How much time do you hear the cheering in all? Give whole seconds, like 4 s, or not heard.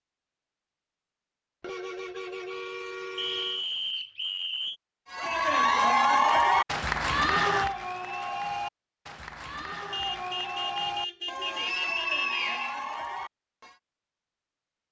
9 s.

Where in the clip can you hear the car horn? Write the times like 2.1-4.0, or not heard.
1.6-3.6, 9.9-12.7.